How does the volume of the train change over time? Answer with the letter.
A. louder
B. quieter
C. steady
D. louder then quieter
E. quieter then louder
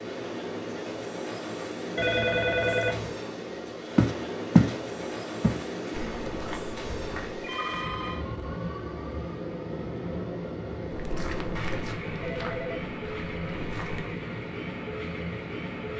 C.